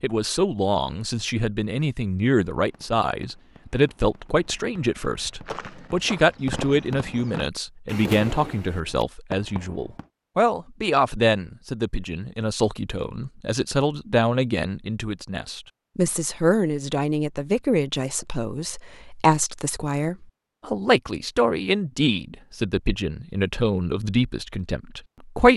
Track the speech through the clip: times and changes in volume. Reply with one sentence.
You can hear the speech from 0.0 to 25.5 s, at a steady volume.